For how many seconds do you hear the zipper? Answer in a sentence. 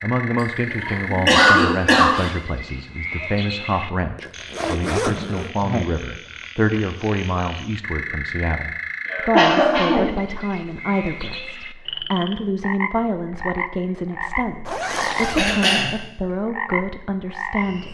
You can hear the zipper for 2 seconds altogether.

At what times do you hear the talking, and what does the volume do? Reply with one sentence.
You can hear the talking from 0.0 to 17.8 s, at a steady volume.